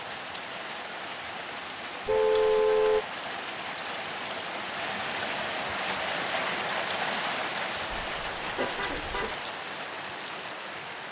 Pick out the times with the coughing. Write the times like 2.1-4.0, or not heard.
7.9-9.3.